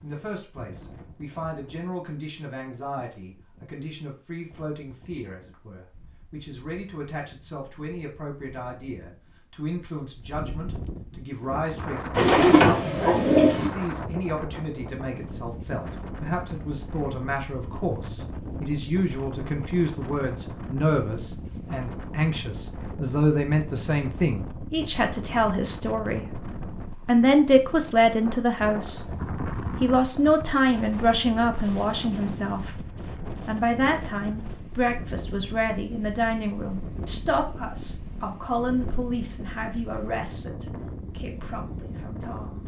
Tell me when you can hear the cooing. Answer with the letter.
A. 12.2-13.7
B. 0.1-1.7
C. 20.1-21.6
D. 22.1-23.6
A.